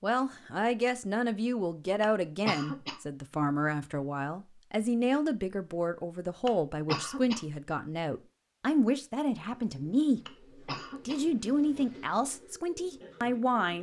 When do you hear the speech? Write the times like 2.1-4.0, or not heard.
0.0-10.2, 11.1-13.7.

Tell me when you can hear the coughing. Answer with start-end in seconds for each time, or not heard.
2.0-3.0, 6.5-7.5, 10.2-11.2.